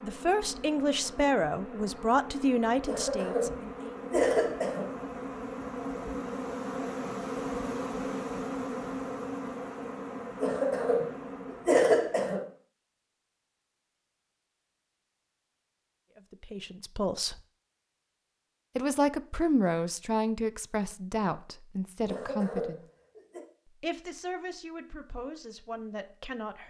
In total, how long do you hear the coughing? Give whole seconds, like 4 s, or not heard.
5 s.